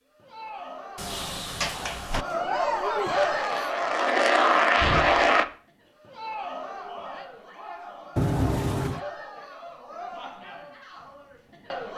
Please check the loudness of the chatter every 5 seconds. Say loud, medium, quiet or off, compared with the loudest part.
loud, medium, medium.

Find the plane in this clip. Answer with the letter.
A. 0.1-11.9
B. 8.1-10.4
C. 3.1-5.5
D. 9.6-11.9
C.